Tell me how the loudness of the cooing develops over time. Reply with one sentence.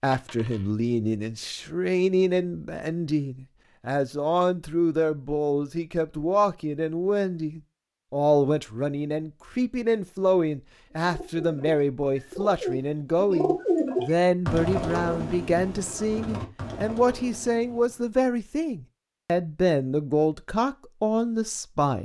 The volume of the cooing goes up, then down.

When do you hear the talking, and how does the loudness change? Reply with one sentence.
You can hear the talking from 0.0 to 22.0 s, at a steady volume.